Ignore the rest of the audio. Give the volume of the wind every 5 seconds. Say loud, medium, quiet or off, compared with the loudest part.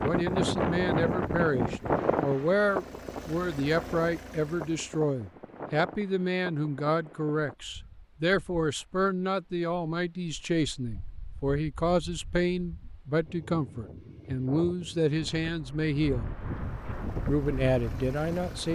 loud, quiet, quiet, medium.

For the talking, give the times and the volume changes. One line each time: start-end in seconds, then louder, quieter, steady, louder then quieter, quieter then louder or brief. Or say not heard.
0.0-16.2 steady
17.2-18.7 brief.